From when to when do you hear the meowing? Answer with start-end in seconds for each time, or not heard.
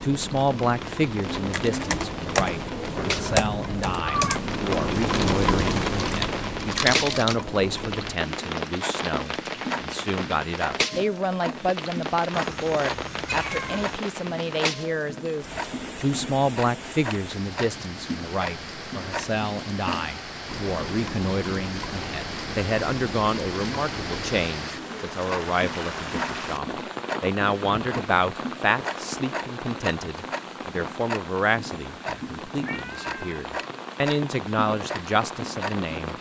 3.0-4.4, 12.3-14.0, 32.6-33.4.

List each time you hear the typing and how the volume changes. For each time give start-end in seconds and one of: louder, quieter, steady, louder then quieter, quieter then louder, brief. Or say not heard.
1.2-7.3 quieter then louder.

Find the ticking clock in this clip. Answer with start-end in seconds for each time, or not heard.
0.0-36.1.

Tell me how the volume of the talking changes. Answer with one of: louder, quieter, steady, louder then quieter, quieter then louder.
steady.